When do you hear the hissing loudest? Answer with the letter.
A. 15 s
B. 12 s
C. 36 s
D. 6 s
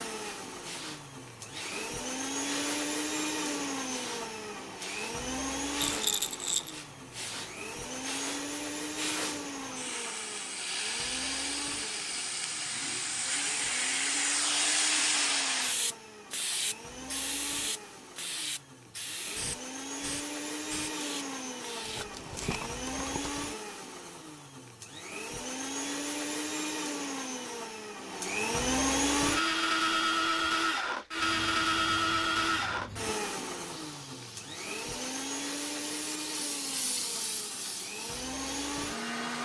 A.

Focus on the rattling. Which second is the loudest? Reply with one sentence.
The loudest moment of the rattling is at 6 seconds.